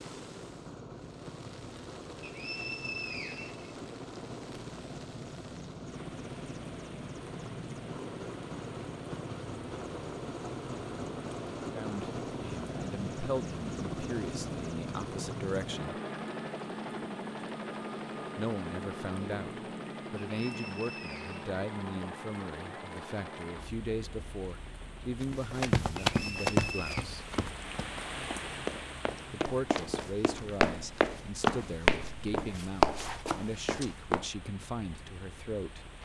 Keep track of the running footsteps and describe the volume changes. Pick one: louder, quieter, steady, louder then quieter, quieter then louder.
quieter then louder.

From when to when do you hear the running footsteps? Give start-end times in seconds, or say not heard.
25.2-34.2.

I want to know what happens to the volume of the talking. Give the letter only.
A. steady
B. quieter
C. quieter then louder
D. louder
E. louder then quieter
A.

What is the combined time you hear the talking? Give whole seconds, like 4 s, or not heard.
20 s.